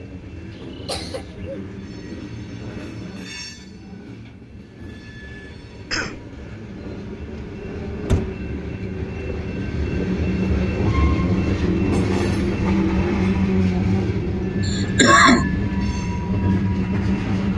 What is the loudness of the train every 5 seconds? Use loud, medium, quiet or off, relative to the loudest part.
quiet, medium, loud, loud.